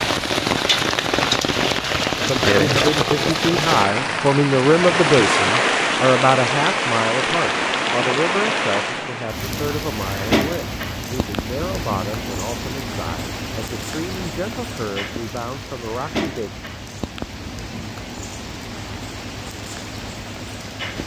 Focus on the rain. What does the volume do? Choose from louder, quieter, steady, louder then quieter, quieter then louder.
quieter.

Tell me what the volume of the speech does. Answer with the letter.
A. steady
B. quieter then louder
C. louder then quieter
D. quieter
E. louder
D.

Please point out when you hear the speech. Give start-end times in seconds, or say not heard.
2.2-16.5.